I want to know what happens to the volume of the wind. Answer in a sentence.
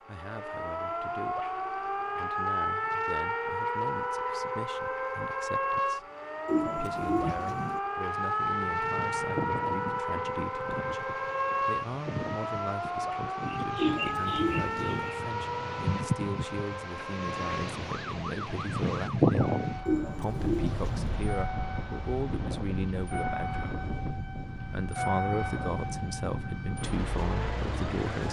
The loudness of the wind goes up, then down.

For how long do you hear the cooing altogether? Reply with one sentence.
The cooing can be heard for 4 seconds in total.